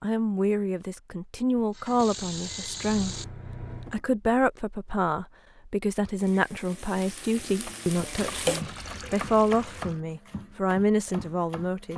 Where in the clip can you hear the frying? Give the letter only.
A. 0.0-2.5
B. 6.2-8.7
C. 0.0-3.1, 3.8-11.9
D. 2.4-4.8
B.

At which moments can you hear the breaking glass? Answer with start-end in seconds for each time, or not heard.
not heard.